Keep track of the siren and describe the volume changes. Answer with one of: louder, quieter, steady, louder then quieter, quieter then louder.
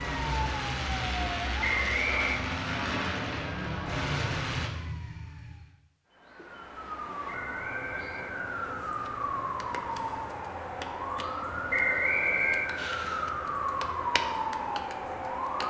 louder.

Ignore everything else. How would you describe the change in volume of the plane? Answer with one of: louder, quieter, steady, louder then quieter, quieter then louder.
steady.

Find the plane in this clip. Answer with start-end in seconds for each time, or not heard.
0.0-4.7.